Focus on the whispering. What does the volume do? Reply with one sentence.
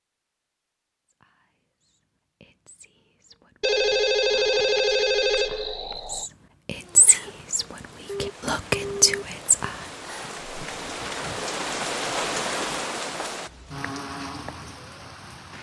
The volume of the whispering goes up.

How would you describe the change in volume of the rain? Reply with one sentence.
The volume of the rain goes up, then down.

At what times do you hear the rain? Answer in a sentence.
You can hear the rain from 6.7 to 15.5 s.